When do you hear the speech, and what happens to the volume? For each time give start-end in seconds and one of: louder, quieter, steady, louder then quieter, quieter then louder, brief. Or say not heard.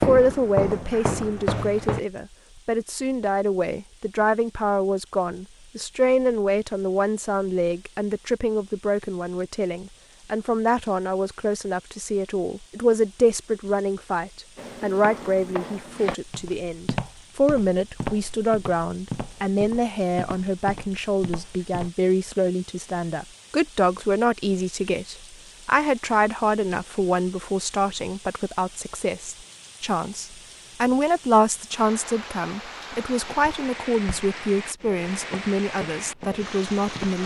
0.0-37.2 steady.